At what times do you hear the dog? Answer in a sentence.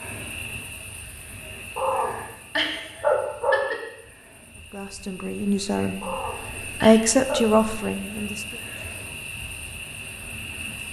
You can hear the dog from 1.8 to 3.8 s and from 6.0 to 7.5 s.